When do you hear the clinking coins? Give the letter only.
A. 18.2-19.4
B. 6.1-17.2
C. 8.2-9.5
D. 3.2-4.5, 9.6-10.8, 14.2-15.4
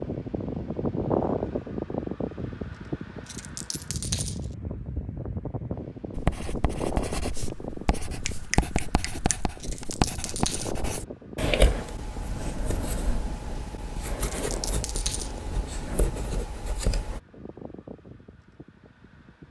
D.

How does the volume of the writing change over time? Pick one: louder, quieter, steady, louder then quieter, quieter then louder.
louder then quieter.